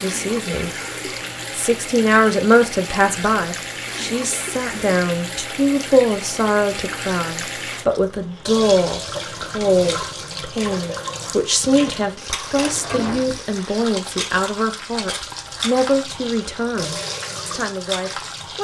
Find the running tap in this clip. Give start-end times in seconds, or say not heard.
0.0-18.5.